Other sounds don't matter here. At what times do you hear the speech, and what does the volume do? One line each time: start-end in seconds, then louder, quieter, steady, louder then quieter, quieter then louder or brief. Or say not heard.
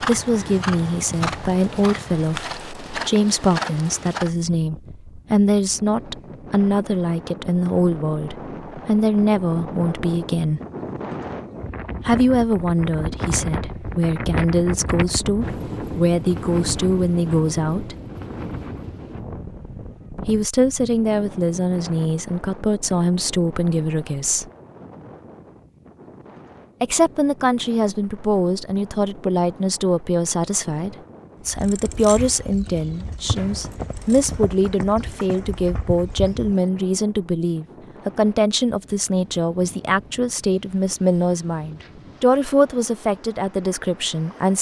0.0-10.6 steady
12.0-17.9 steady
20.2-24.4 steady
26.8-44.5 steady.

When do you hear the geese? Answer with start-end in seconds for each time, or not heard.
not heard.